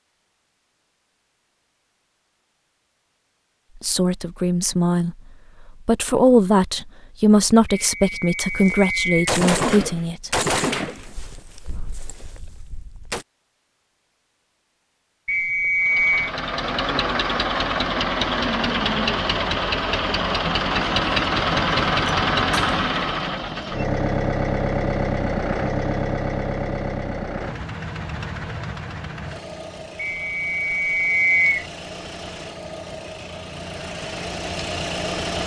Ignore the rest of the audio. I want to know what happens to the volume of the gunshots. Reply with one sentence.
The volume of the gunshots goes down.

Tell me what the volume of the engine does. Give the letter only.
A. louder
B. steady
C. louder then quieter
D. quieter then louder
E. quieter
E.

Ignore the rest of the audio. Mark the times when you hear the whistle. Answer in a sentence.
You can hear the whistle from 7.8 to 9.3 s, from 15.2 to 16.3 s and from 29.9 to 31.6 s.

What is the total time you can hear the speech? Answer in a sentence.
The speech can be heard for 6 seconds in total.